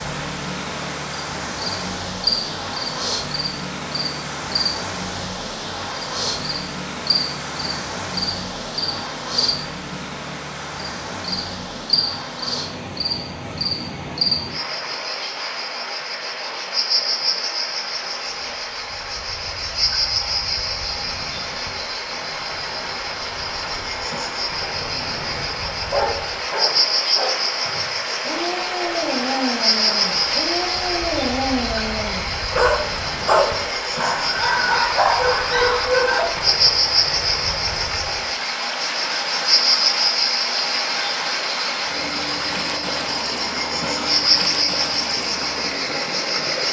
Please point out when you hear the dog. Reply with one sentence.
You can hear the dog from 24.8 to 36.2 s.